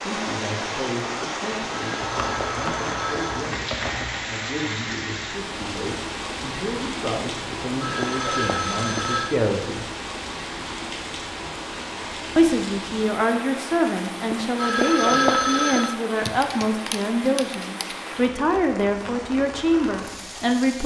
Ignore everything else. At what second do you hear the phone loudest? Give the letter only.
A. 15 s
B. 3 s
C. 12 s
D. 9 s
A.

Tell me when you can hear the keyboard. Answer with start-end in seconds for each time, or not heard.
2.0-4.3, 16.2-17.9.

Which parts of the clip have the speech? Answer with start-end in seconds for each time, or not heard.
0.0-9.8, 12.3-20.8.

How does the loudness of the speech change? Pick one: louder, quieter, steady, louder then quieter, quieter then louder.
louder.